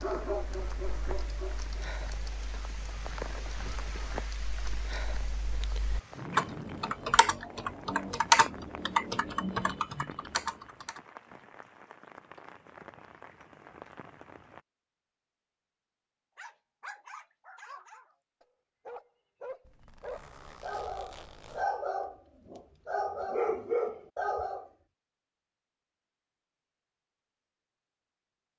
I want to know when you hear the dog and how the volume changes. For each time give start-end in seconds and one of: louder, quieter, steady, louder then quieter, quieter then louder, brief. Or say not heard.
0.0-1.9 brief
16.4-24.7 louder.